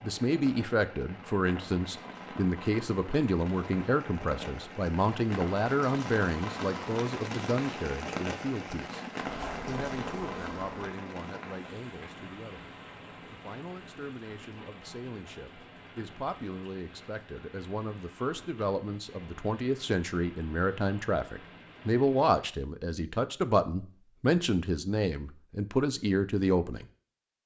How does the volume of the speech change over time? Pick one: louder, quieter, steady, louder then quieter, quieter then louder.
quieter then louder.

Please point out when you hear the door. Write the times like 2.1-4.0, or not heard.
9.2-10.7.